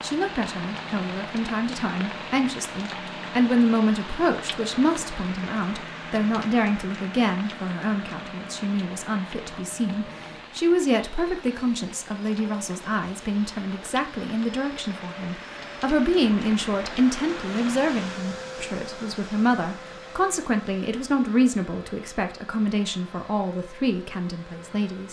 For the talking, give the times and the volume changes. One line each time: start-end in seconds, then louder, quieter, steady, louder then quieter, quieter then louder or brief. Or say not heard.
0.0-25.0 steady.